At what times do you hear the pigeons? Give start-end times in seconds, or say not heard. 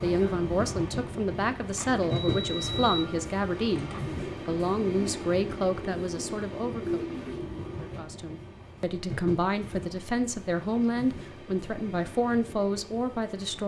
1.6-8.0.